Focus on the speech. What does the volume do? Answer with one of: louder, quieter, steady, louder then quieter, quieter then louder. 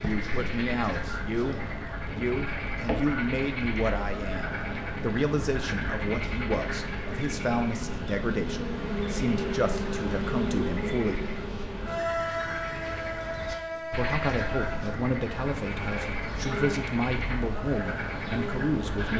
steady.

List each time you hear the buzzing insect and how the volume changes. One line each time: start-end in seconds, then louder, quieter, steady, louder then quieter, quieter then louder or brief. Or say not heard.
0.0-19.1 louder then quieter.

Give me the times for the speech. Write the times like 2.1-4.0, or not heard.
0.0-11.3, 13.8-19.1.